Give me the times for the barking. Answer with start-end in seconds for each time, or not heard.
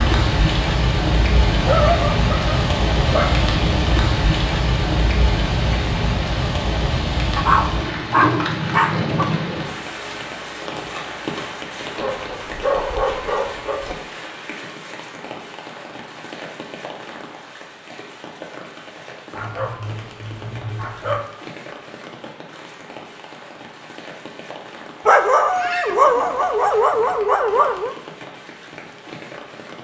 1.6-3.5, 7.3-9.3, 11.9-13.9, 19.4-21.2, 25.1-27.9.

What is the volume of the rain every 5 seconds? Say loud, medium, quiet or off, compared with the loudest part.
loud, loud, medium, quiet, quiet, quiet.